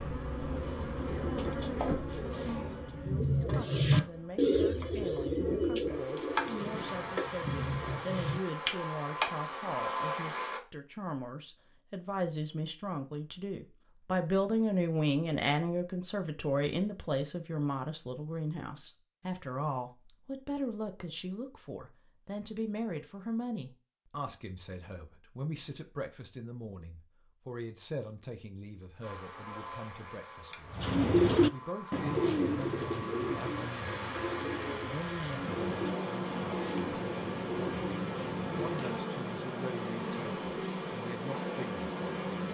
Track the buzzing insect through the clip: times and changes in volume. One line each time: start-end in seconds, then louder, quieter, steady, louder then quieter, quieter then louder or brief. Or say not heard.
0.0-10.6 quieter then louder
29.0-42.4 louder.